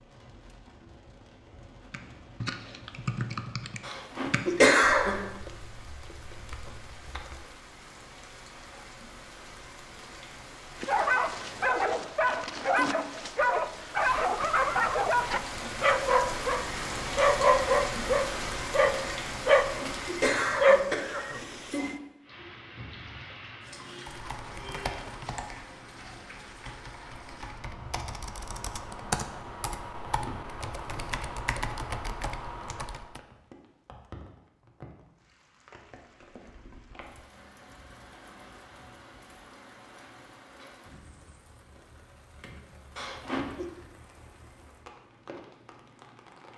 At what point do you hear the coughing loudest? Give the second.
5 s.